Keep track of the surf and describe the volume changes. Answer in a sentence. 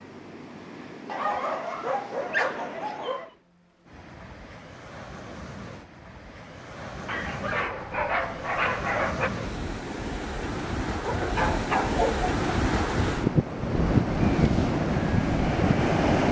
The loudness of the surf goes up.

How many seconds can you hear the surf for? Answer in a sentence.
The surf can be heard for 16 seconds in total.